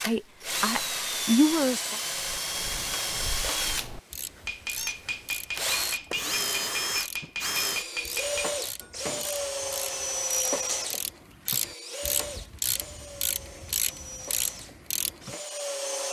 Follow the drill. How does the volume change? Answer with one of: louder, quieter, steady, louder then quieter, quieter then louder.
quieter.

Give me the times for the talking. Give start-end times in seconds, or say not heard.
0.0-2.0.